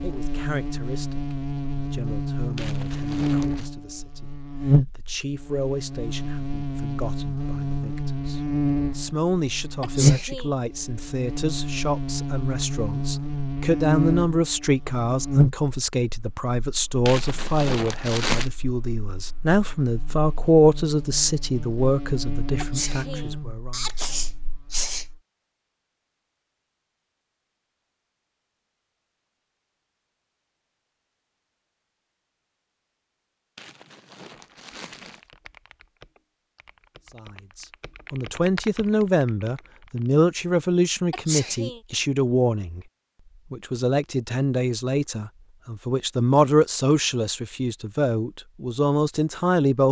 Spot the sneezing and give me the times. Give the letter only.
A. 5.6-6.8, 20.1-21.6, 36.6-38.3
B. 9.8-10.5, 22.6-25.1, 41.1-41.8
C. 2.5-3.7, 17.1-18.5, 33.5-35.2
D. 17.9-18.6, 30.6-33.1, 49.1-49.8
B.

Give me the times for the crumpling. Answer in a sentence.
The crumpling can be heard from 2.5 to 3.7 s, from 17.1 to 18.5 s and from 33.5 to 35.2 s.